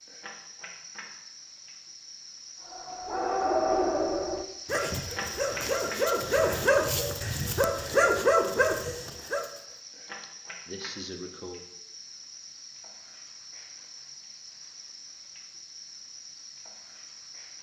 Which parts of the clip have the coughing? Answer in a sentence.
The coughing can be heard from 10.1 to 11.7 s.